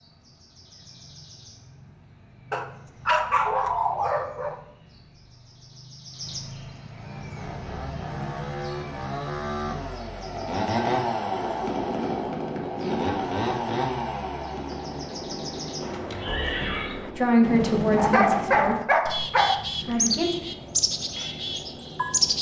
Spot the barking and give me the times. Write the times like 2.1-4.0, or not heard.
2.5-4.5, 17.9-19.6.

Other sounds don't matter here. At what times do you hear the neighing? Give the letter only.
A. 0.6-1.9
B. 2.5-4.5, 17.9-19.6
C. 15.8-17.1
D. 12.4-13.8
C.